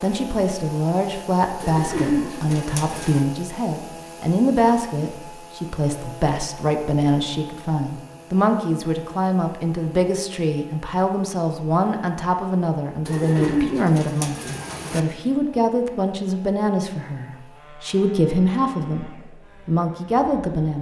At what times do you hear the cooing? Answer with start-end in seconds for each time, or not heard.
1.6-3.2, 13.1-15.0.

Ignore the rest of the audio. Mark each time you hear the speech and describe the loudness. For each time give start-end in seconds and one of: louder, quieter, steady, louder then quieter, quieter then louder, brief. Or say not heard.
0.0-20.7 steady.